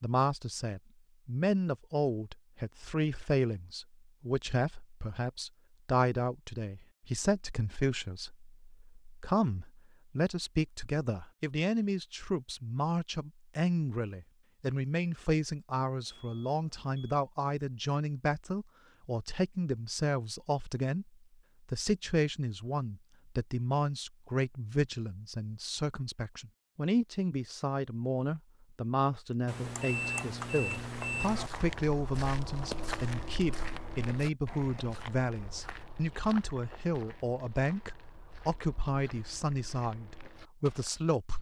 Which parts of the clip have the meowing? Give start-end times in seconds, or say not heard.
not heard.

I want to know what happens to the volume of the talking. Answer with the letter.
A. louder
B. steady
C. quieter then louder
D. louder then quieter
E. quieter
B.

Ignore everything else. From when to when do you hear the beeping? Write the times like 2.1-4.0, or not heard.
16.1-17.2, 29.4-31.5.